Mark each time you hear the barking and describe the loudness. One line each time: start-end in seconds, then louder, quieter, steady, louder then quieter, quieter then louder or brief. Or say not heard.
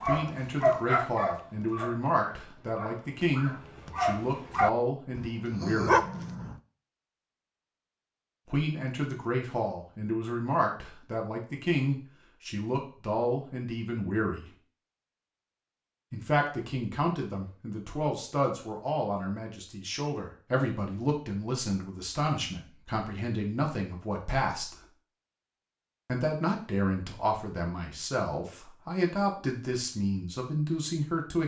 0.0-6.6 quieter then louder.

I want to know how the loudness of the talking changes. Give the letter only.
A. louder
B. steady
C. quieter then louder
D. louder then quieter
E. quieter
B.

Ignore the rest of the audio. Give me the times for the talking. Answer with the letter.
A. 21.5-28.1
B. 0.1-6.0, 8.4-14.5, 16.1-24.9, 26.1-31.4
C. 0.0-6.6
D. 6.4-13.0
B.